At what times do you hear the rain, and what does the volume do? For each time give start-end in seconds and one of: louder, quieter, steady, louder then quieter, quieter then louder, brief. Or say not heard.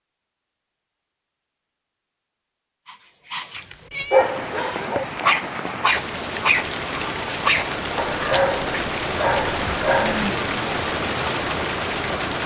4.2-12.4 louder.